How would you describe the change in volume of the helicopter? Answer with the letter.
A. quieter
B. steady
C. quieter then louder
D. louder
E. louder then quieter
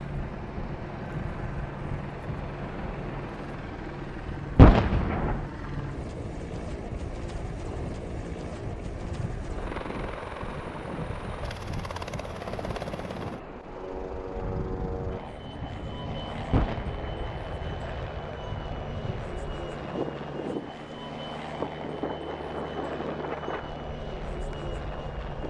B.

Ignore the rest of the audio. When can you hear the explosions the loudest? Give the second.
5 s.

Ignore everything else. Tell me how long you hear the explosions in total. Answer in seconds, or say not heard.
2 s.